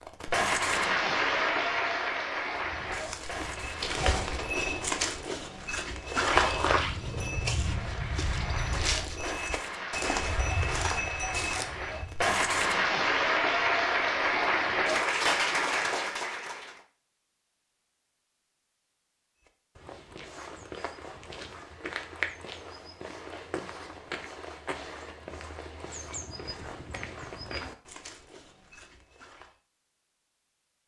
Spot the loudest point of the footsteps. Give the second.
6 s.